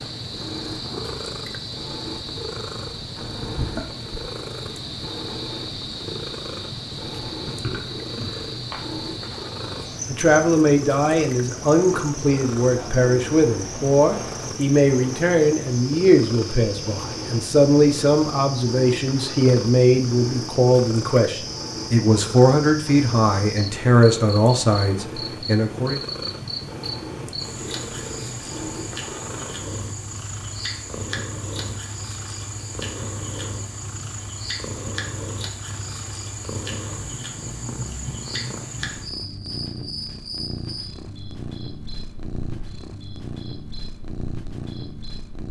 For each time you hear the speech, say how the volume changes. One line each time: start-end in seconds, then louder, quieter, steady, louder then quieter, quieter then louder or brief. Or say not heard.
9.6-26.0 steady.